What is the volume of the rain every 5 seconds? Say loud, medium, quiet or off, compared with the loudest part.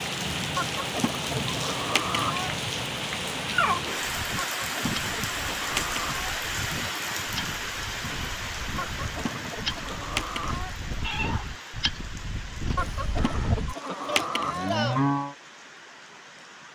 loud, loud, medium, quiet.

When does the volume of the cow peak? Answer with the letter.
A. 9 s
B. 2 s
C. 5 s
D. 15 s
D.